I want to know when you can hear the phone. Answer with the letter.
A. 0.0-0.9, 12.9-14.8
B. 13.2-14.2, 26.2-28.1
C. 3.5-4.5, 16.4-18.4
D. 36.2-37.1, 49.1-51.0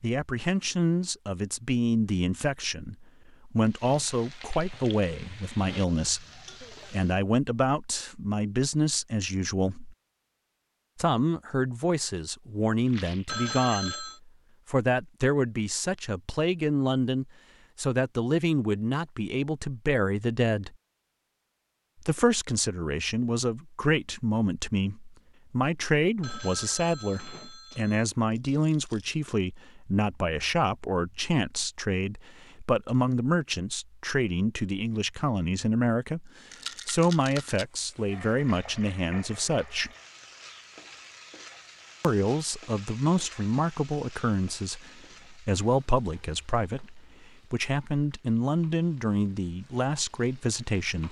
B.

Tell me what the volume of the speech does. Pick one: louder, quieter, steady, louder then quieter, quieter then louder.
steady.